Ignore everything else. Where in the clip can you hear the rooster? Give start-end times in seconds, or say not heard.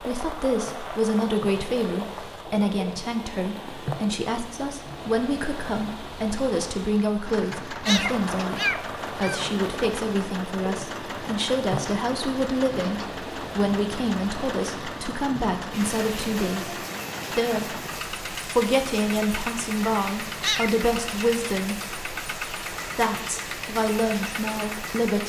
not heard.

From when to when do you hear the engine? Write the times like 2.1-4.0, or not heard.
7.2-25.2.